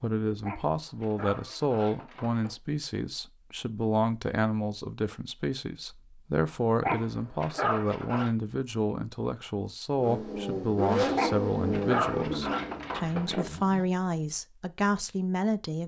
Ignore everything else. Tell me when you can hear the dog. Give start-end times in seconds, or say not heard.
0.4-2.5, 6.8-8.3, 11.2-13.5.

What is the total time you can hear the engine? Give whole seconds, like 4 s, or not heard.
4 s.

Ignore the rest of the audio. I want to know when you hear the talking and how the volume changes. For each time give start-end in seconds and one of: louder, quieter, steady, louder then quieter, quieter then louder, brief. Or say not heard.
0.0-15.8 steady.